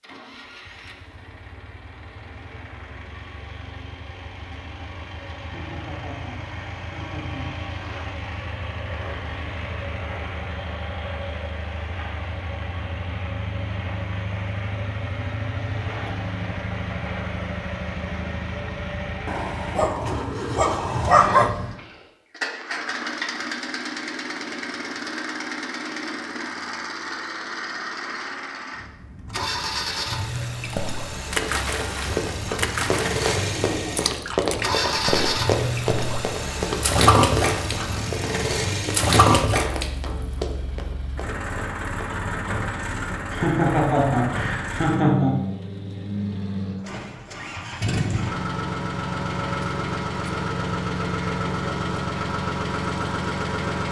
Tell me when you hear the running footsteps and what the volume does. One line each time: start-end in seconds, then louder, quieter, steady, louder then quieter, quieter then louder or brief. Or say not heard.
31.4-42.1 quieter.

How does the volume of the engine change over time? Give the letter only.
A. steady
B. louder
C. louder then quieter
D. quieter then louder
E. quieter
B.